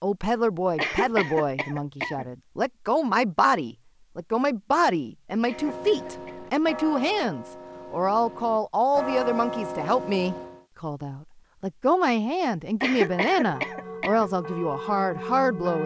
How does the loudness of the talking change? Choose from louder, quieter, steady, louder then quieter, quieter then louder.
steady.